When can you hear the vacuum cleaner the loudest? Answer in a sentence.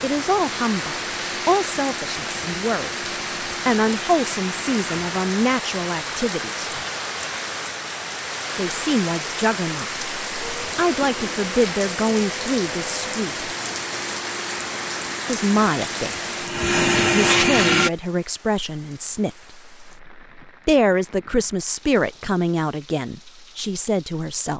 The loudest moment of the vacuum cleaner is at 17 seconds.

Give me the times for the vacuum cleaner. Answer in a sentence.
You can hear the vacuum cleaner from 0.0 to 5.0 s and from 10.4 to 17.9 s.